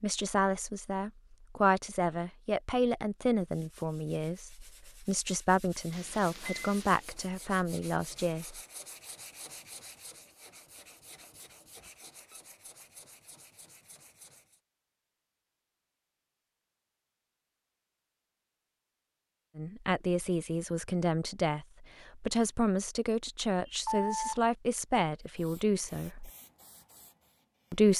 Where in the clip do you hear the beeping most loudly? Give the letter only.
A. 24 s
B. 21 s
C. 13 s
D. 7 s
A.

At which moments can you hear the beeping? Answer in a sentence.
The beeping can be heard from 5.9 to 7.0 s, from 11.8 to 12.4 s and from 23.6 to 24.4 s.